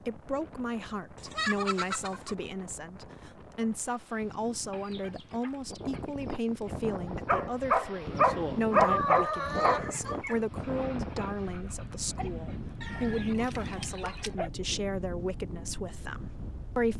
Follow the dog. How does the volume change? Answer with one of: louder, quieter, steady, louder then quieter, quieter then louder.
quieter.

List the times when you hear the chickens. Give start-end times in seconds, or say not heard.
1.1-2.4, 4.7-6.8, 8.8-10.4, 12.8-14.3.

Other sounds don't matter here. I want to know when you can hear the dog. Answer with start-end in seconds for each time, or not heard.
7.0-14.5.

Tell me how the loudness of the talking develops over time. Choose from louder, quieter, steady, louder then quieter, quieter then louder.
steady.